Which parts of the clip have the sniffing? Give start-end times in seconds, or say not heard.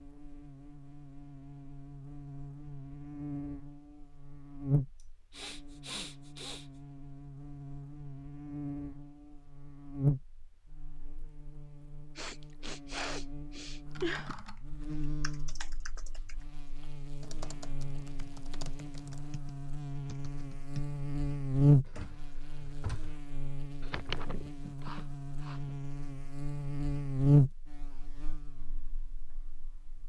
5.0-6.7, 12.2-14.4, 23.9-25.6.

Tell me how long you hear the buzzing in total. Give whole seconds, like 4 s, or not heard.
30 s.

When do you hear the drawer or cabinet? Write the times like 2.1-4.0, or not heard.
21.9-23.1.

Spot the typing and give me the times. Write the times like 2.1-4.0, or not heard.
13.8-20.9.